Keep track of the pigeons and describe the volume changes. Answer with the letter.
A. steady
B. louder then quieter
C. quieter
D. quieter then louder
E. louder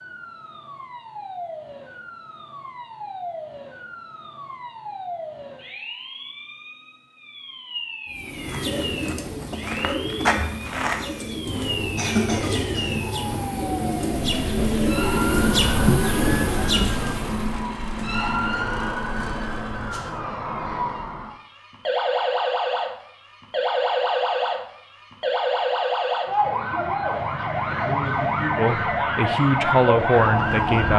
E.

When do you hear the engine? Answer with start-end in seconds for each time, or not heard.
14.2-20.1.